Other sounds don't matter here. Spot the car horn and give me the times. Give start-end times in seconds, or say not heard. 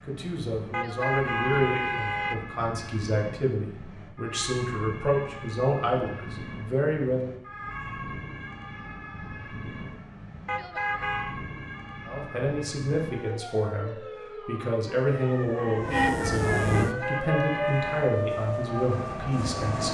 0.7-2.4, 10.4-11.3, 16.7-18.2.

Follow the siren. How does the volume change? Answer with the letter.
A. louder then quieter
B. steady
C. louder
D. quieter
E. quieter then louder
C.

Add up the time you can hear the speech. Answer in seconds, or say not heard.
15 s.